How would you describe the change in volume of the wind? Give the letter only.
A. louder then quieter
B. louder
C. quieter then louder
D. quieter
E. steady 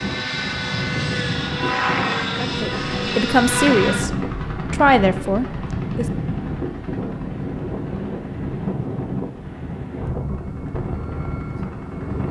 E.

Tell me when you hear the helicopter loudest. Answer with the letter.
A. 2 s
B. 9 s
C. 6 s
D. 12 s
A.